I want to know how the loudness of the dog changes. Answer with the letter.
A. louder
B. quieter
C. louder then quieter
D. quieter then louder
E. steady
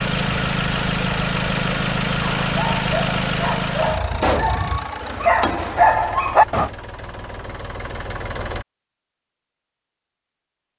A.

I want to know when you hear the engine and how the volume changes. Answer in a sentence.
The engine can be heard from 0.0 to 8.7 s, getting quieter.